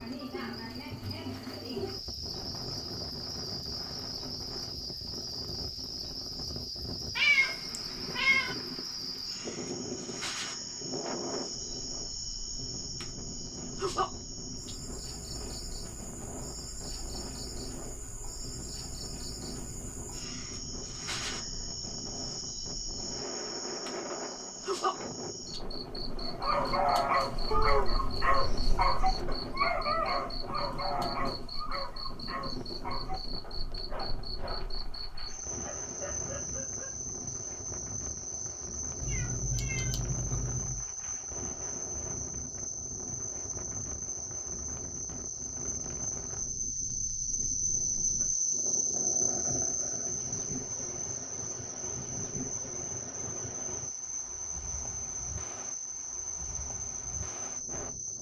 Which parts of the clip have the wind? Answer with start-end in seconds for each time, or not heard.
0.0-58.1.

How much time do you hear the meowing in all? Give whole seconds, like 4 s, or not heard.
5 s.